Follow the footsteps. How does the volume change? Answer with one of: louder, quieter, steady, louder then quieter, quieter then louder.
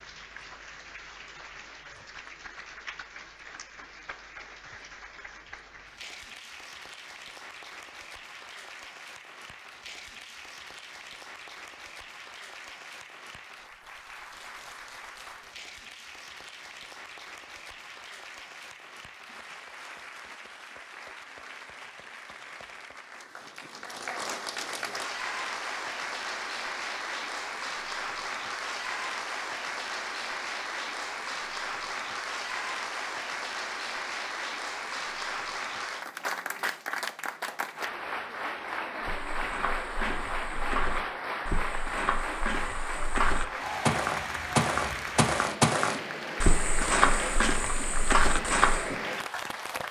louder.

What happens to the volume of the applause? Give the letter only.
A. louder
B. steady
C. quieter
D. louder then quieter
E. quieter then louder
A.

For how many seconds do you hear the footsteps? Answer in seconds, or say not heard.
10 s.